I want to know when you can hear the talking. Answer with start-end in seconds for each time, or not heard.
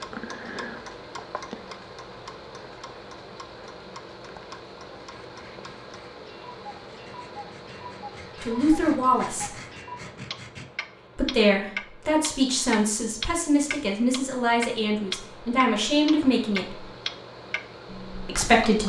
8.4-9.5, 11.2-16.9, 18.2-18.8.